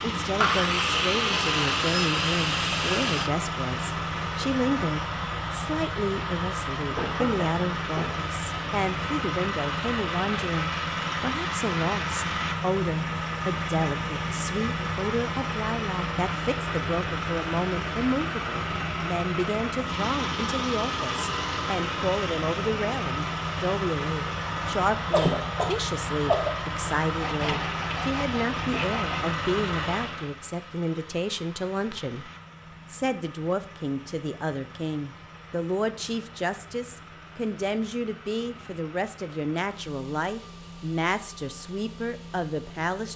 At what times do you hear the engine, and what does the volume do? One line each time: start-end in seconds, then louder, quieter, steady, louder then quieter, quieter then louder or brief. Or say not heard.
0.0-43.1 quieter.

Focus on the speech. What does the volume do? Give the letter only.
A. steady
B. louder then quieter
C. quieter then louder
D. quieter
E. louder
A.